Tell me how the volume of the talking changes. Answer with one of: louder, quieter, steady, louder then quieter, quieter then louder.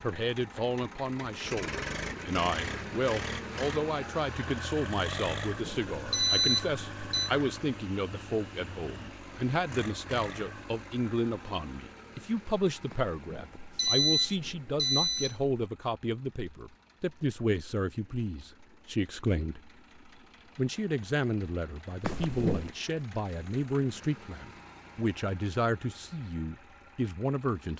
steady.